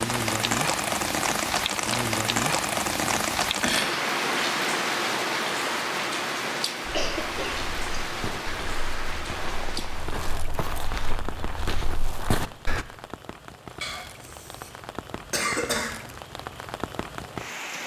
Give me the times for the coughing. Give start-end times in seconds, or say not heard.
3.0-4.0, 6.9-8.2, 13.8-14.7, 15.3-16.0.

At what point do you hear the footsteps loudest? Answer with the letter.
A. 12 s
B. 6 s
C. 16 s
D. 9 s
A.